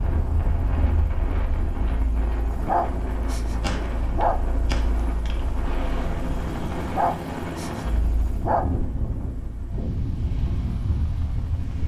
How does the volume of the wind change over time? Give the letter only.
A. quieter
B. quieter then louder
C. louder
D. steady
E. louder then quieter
D.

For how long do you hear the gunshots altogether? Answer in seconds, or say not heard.
2 s.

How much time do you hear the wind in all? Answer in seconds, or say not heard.
12 s.